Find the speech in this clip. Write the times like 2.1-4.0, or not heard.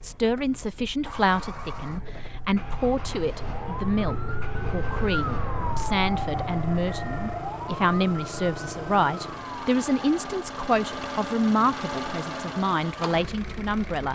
0.0-14.1.